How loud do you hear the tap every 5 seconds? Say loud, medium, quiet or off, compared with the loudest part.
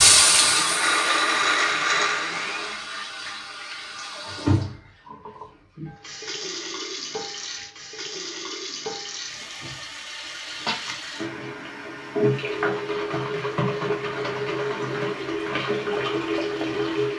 loud, medium, loud, loud.